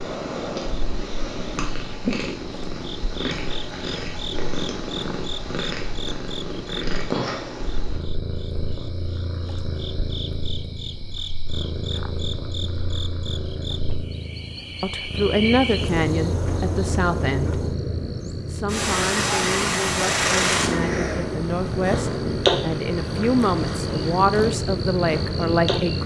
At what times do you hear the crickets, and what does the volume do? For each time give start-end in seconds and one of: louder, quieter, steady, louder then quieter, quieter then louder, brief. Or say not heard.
0.2-26.0 louder.